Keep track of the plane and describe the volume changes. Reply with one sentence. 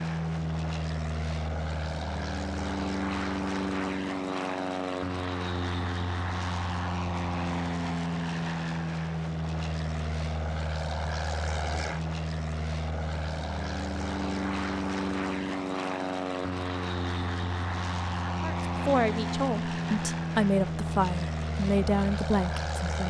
The volume of the plane stays about the same.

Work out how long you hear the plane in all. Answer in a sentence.
The plane can be heard for 23 seconds in total.